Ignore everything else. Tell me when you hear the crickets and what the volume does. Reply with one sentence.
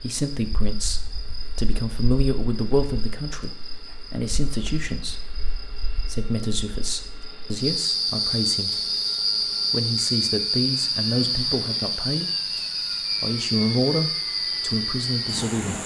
The crickets can be heard from 0.1 to 15.8 s, getting louder.